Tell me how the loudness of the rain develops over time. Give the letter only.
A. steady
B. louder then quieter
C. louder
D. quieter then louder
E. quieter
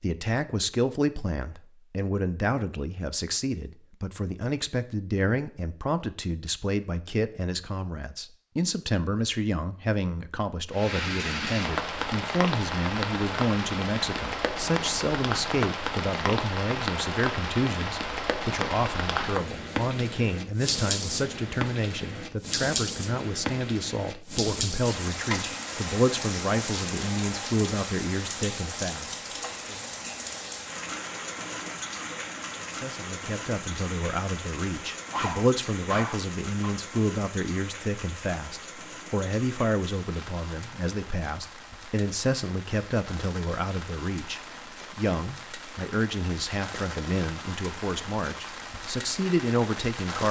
E.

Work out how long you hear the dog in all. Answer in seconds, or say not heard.
2 s.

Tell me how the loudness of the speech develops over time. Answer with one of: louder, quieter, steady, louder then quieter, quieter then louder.
steady.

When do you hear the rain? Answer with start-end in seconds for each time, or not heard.
10.7-50.2.